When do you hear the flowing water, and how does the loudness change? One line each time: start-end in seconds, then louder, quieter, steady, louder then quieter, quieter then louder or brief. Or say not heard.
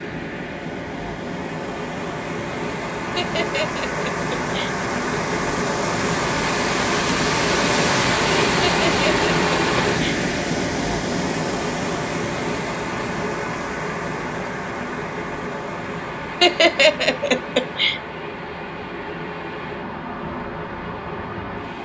0.0-21.8 louder then quieter.